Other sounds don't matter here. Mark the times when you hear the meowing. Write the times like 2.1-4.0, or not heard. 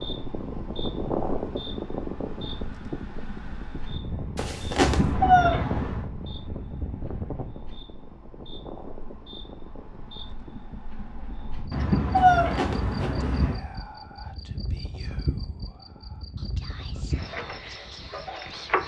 4.8-6.0, 11.7-13.6.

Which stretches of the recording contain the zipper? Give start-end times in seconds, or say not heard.
4.3-5.0, 12.2-13.2.